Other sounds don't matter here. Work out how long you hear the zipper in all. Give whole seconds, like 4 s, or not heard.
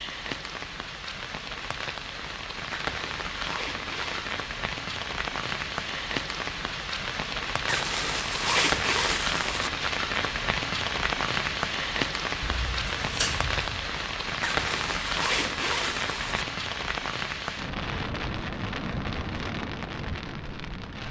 6 s.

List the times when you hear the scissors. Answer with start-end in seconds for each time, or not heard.
12.4-13.8.